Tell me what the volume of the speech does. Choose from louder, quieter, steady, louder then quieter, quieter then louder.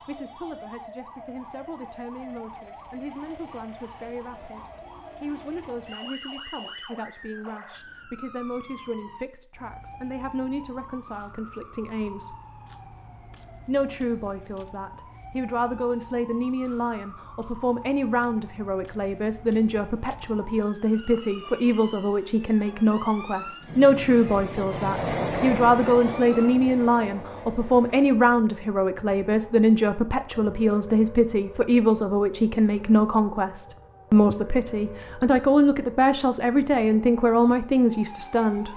louder.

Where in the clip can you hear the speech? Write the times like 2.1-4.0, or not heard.
0.0-12.3, 13.7-38.7.